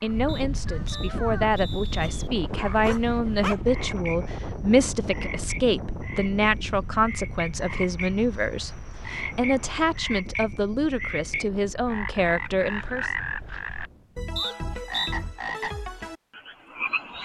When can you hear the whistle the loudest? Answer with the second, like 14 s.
15 s.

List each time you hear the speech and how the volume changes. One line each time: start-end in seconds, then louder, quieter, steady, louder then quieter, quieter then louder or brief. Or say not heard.
0.0-13.1 steady.